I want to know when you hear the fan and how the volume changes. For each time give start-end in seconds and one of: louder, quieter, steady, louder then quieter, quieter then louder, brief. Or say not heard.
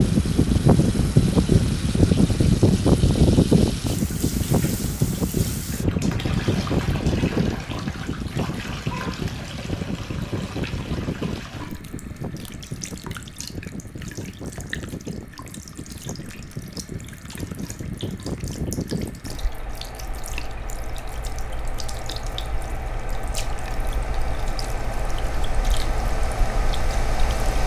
0.0-27.6 quieter.